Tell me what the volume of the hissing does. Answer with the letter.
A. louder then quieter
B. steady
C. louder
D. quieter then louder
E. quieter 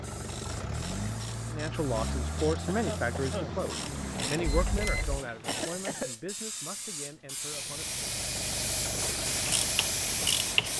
C.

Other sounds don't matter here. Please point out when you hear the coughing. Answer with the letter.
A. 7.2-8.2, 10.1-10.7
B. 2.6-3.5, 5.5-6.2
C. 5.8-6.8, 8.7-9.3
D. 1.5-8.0
B.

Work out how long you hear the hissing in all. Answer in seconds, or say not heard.
11 s.